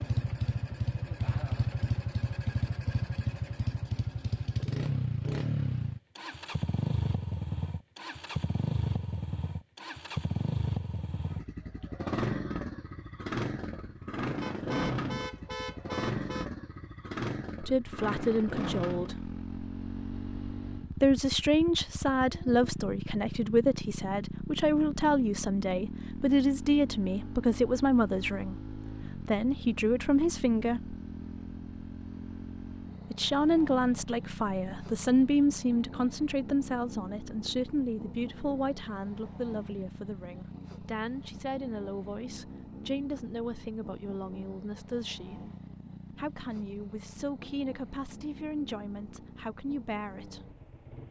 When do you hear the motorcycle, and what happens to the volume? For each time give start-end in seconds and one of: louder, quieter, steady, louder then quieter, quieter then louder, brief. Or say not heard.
0.0-51.0 quieter.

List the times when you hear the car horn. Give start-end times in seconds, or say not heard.
14.4-16.5.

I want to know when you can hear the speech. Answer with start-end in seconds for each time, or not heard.
17.6-19.3, 21.0-30.9, 33.1-45.5, 46.1-50.5.